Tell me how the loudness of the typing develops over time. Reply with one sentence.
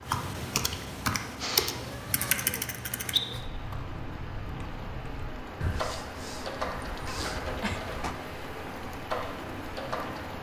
The volume of the typing goes down.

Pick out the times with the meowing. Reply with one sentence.
The meowing can be heard from 1.7 to 3.5 s and from 6.8 to 8.2 s.